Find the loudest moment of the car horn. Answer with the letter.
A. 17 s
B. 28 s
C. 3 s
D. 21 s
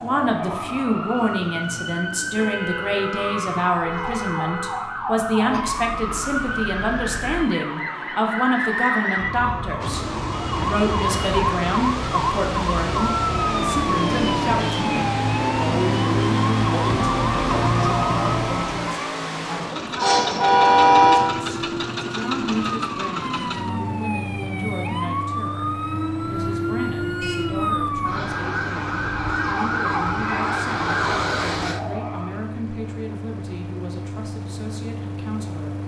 D.